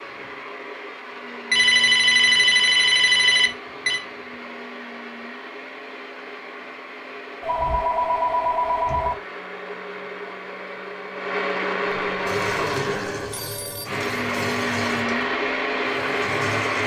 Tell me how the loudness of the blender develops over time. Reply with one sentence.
The volume of the blender goes up.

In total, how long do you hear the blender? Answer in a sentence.
You can hear the blender for 17 seconds altogether.